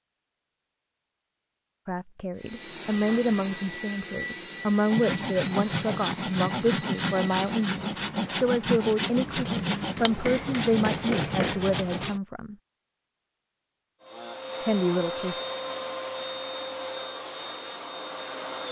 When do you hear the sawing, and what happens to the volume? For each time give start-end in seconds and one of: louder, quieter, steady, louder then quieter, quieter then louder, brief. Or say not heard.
4.9-12.2 steady.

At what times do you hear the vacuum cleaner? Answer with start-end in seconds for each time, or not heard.
2.4-7.8, 14.0-18.6.